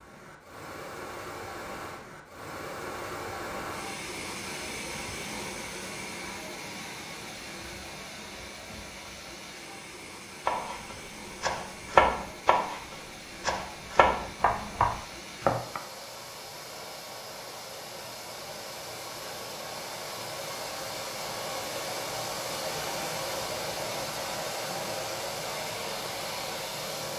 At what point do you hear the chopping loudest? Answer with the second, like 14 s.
12 s.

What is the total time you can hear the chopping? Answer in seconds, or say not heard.
5 s.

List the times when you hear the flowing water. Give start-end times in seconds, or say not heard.
0.0-27.1.